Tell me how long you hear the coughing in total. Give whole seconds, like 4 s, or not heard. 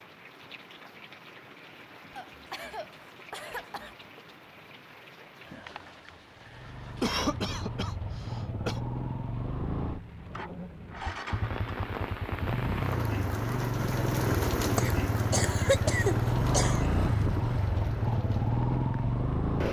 6 s.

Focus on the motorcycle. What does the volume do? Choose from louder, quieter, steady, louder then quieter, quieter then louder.
louder.